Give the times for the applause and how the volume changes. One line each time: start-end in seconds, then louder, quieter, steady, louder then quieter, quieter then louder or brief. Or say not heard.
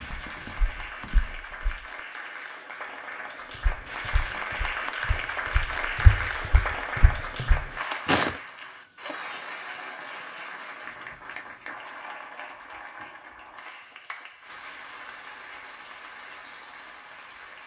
0.0-17.6 louder then quieter.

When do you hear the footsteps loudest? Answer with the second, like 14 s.
8 s.